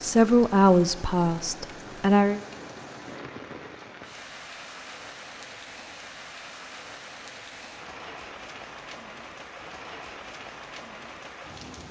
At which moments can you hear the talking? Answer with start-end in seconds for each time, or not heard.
0.0-2.4.